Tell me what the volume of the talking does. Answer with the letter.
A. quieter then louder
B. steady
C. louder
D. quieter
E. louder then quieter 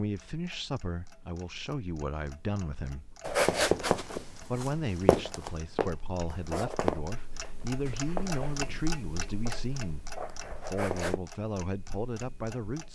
B.